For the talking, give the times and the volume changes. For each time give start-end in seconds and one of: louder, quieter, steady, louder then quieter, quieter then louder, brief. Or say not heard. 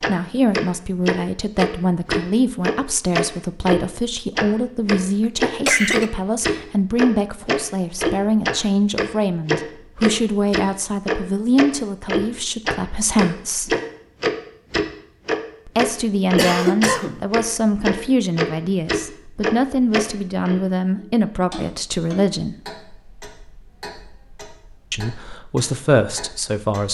0.1-13.8 steady
15.7-22.6 steady
24.9-26.8 brief.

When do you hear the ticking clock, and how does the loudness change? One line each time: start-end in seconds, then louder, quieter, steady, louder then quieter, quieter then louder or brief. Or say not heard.
0.0-26.8 quieter.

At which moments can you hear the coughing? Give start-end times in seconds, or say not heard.
5.2-6.0, 16.4-17.2.